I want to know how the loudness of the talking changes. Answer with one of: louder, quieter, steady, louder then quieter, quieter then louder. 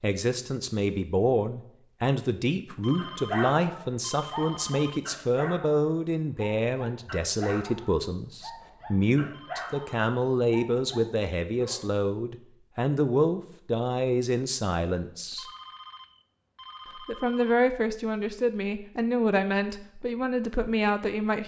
steady.